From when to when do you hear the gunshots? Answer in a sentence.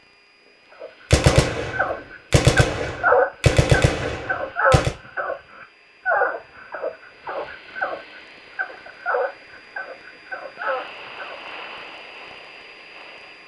You can hear the gunshots from 1.1 to 5.0 s.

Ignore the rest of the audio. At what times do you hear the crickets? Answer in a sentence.
You can't hear the crickets here.